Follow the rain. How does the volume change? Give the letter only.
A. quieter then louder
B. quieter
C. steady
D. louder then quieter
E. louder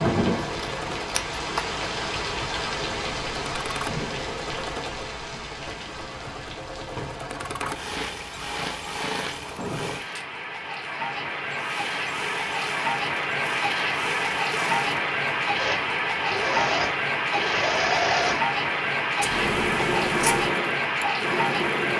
A.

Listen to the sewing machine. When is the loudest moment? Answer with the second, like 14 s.
18 s.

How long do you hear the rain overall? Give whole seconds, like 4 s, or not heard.
22 s.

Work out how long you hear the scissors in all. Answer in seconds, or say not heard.
2 s.